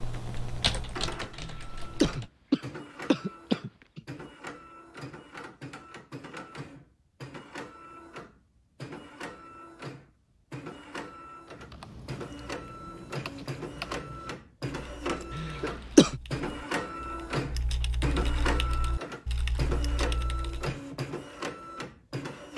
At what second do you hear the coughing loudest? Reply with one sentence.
The loudest moment of the coughing is at 16 seconds.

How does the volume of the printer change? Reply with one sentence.
The loudness of the printer goes up.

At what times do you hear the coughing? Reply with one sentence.
The coughing can be heard from 1.4 to 4.0 s and from 15.3 to 16.2 s.